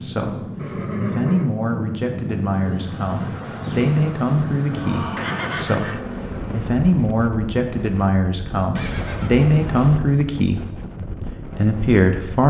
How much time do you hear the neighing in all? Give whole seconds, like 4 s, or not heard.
3 s.